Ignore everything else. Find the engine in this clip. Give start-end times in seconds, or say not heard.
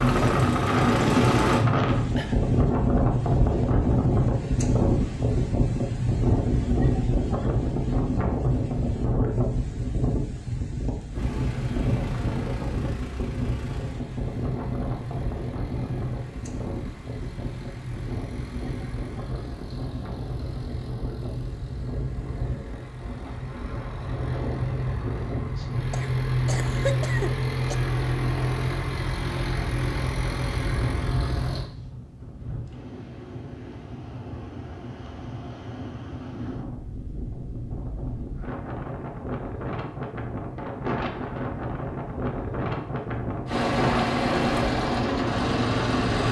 0.0-1.6, 11.1-31.6, 43.5-46.2.